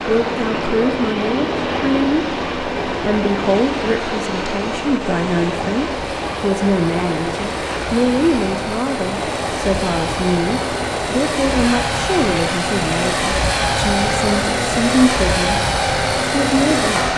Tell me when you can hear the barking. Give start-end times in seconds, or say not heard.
not heard.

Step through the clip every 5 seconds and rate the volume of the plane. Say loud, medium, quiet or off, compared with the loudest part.
medium, medium, loud, loud.